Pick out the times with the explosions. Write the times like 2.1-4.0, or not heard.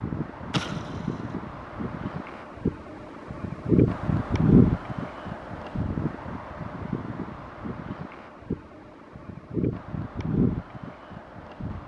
0.5-1.4.